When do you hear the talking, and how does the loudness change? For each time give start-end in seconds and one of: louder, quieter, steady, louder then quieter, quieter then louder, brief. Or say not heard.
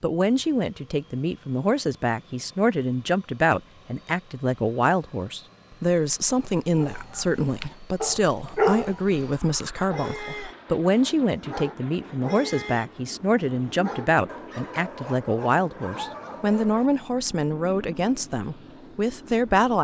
0.0-19.8 steady.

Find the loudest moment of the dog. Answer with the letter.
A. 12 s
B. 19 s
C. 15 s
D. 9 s
D.